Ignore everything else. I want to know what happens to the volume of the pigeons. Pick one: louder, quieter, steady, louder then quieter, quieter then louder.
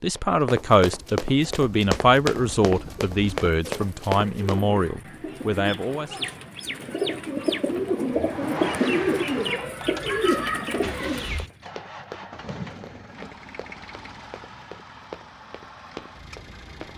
louder.